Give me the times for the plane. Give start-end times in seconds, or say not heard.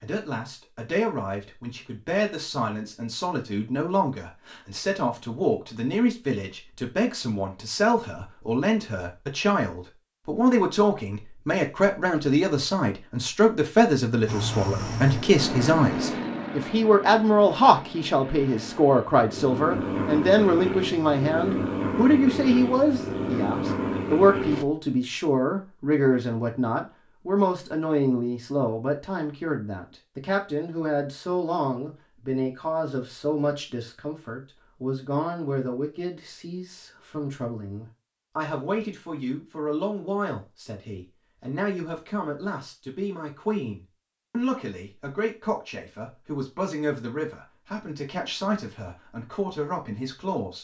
14.2-24.6.